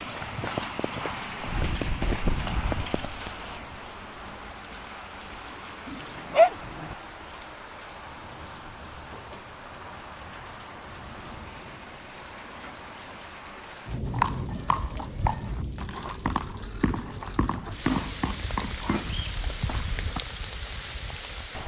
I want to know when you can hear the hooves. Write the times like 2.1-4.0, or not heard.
0.0-3.1, 14.1-20.2.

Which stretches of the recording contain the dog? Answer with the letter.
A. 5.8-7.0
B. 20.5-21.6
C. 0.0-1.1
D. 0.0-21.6
A.